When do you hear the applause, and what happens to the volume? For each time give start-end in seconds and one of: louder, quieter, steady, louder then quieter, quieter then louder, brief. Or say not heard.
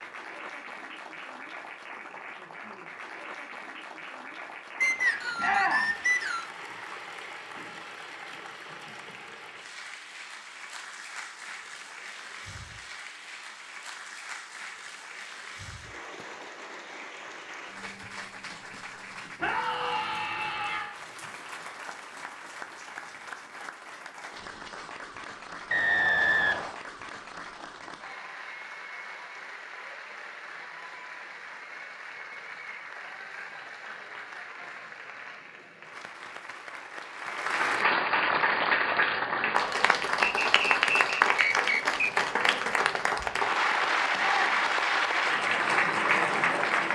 0.0-46.9 louder.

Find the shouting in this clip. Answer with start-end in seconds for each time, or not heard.
5.3-6.0, 19.4-20.9, 44.1-44.7.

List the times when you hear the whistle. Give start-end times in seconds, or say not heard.
4.8-6.5, 25.7-26.8, 40.2-42.0.